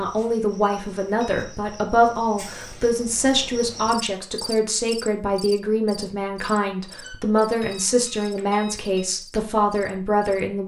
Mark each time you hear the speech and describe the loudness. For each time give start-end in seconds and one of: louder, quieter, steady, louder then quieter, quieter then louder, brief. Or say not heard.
0.0-10.6 steady.